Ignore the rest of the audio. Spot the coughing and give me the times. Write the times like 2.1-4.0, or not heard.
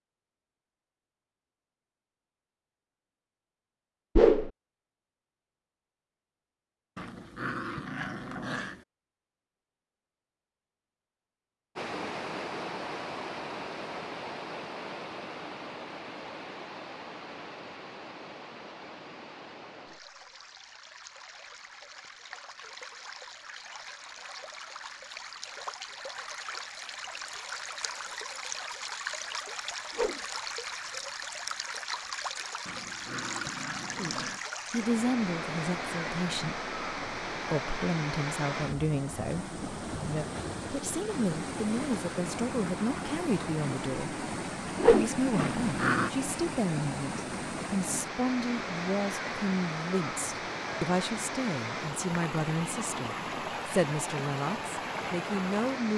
not heard.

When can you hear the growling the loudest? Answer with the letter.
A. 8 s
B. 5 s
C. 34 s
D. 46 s
D.